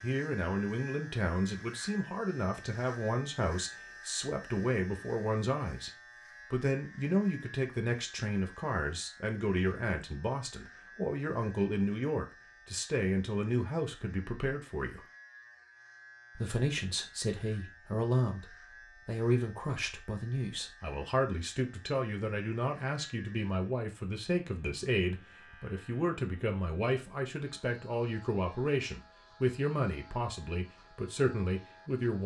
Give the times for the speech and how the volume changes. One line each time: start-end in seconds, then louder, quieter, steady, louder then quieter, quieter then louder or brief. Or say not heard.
0.0-15.1 steady
16.4-32.2 steady.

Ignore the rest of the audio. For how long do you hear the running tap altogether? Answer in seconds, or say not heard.
not heard.